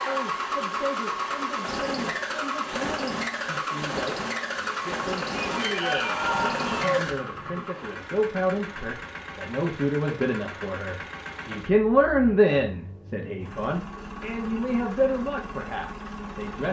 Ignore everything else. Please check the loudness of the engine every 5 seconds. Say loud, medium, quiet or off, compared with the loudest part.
loud, loud, medium, medium.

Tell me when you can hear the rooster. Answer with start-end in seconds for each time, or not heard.
5.4-7.7.